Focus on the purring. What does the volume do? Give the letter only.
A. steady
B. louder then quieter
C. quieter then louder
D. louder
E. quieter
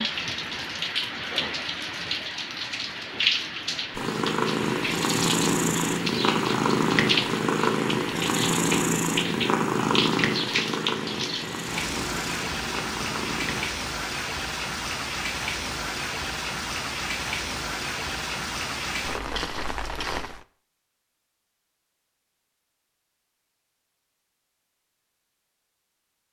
E.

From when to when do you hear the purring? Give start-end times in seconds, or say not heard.
4.0-13.7.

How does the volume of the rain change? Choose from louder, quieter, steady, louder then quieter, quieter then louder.
steady.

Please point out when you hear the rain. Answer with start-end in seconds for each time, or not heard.
0.0-20.4.